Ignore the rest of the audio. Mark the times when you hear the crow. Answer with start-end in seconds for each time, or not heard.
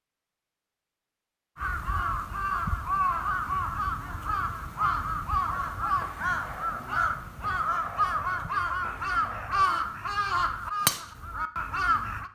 1.6-12.3.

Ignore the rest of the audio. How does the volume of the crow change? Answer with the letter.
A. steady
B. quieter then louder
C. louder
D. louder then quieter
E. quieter
A.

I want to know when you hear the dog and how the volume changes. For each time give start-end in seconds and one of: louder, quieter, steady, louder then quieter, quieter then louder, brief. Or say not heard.
not heard.